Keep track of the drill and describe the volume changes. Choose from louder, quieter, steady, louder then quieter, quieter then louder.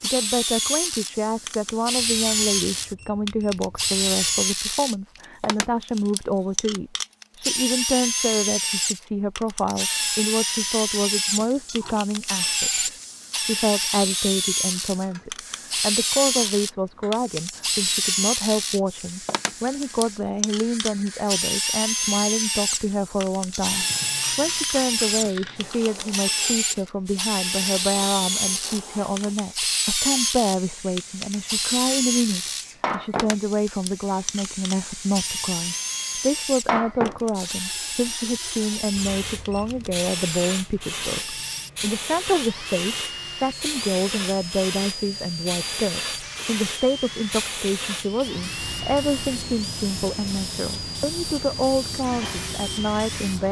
quieter.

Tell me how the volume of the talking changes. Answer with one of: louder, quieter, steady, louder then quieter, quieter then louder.
steady.